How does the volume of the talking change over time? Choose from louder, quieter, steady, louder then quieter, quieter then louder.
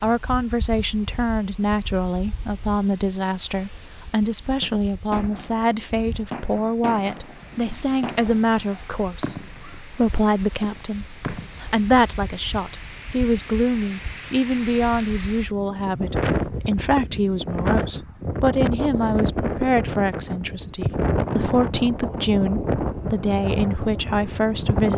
steady.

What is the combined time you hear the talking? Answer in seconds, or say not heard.
25 s.